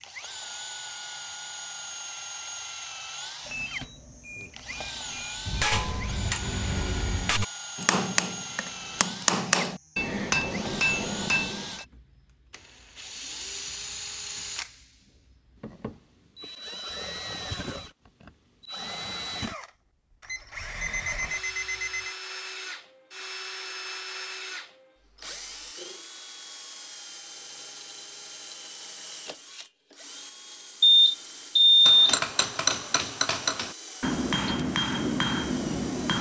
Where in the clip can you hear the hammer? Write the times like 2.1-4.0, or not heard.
5.5-11.8, 31.9-36.1.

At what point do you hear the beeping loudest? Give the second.
32 s.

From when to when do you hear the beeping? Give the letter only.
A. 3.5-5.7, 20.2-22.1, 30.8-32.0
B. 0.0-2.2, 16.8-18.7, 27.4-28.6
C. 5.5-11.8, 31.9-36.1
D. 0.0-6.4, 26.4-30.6
A.